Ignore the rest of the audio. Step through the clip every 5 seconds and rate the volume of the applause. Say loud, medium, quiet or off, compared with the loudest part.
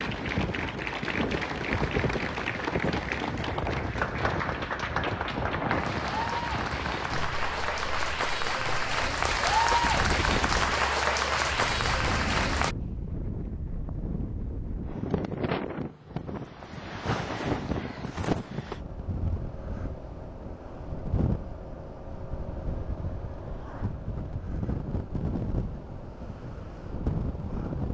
medium, loud, loud, off, off, off.